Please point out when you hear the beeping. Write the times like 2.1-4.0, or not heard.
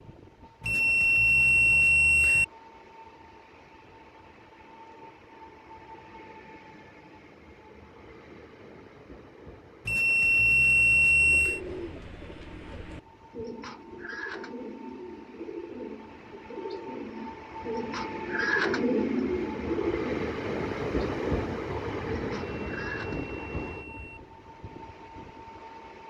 0.6-2.5, 9.8-11.6, 22.6-24.2.